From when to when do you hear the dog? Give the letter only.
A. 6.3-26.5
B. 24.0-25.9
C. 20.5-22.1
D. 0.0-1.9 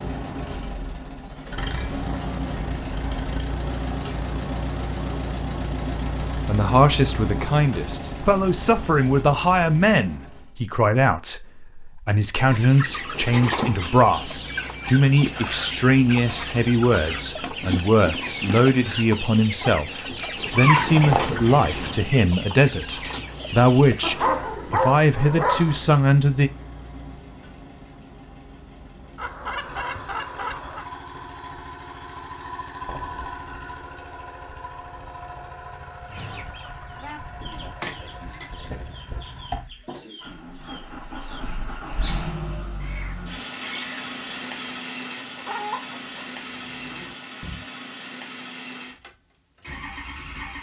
B.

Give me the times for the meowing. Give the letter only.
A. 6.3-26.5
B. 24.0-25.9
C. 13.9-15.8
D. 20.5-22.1
D.